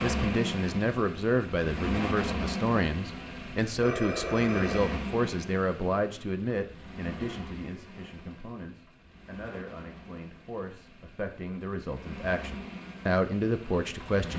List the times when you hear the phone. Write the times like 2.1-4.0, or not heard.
3.8-5.0.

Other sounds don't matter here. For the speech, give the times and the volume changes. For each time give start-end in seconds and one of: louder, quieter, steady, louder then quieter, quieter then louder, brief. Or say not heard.
0.0-14.3 quieter then louder.